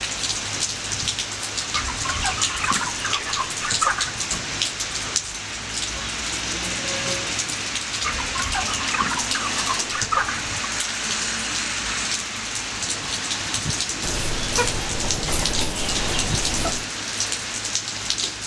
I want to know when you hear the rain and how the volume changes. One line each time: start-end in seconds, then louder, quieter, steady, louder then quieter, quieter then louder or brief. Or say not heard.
0.0-18.4 steady.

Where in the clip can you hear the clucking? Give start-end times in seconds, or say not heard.
1.7-4.3, 8.0-10.7, 14.0-16.9.